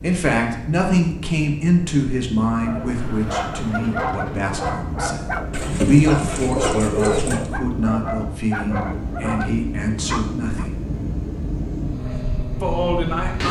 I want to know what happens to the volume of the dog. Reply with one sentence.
The loudness of the dog stays about the same.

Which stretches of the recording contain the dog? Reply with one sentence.
The dog can be heard from 2.5 to 10.7 s.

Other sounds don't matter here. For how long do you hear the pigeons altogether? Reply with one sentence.
You can hear the pigeons for 2 seconds altogether.